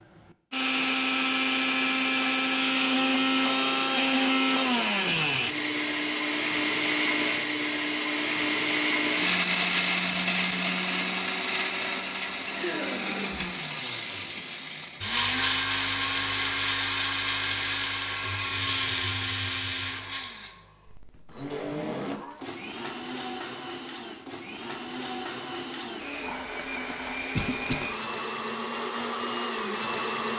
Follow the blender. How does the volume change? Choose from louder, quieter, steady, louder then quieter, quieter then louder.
quieter.